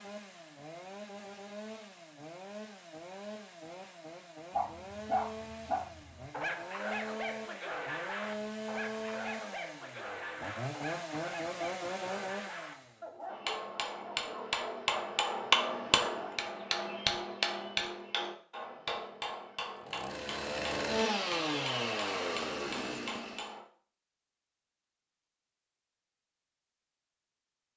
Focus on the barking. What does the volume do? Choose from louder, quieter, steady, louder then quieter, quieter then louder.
quieter.